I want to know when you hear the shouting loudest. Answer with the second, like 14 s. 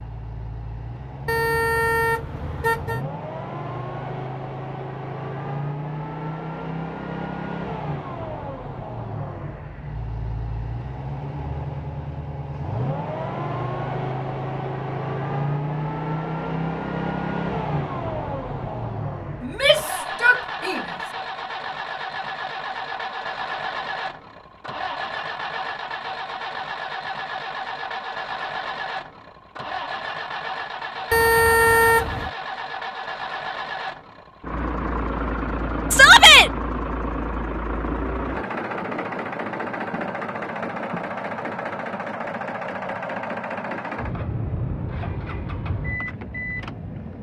36 s.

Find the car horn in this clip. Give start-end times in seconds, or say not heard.
1.2-3.0, 31.1-32.3.